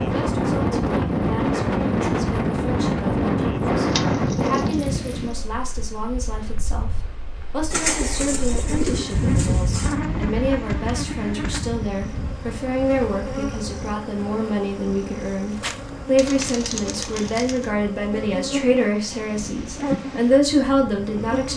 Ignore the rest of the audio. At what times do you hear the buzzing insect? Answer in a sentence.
You can hear the buzzing insect from 8.7 to 21.5 s.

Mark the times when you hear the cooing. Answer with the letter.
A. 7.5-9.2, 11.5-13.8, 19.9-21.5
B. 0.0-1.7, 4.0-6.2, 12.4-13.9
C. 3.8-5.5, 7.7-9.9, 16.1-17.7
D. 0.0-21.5
C.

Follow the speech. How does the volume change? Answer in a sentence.
The loudness of the speech goes up.